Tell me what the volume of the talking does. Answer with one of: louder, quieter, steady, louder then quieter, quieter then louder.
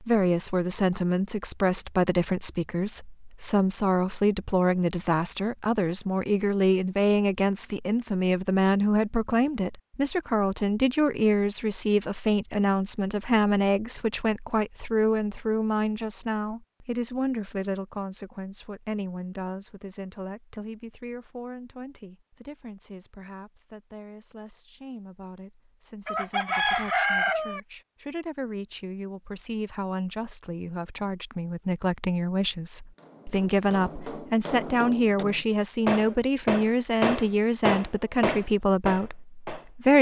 quieter then louder.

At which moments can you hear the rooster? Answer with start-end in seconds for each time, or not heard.
26.1-27.6.